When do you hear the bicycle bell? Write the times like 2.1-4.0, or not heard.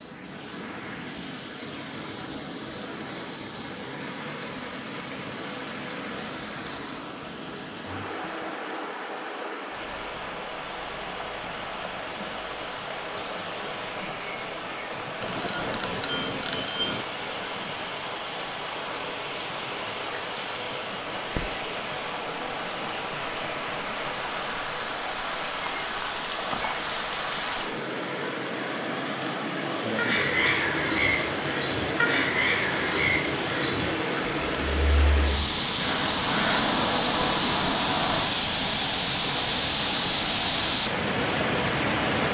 15.2-17.1.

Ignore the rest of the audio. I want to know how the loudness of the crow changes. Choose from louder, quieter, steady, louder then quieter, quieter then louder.
steady.